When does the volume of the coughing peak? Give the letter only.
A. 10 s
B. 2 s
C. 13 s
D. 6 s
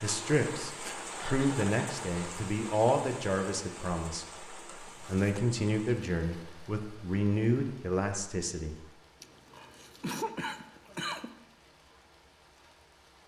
A.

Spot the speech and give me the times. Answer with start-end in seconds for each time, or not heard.
0.0-8.8.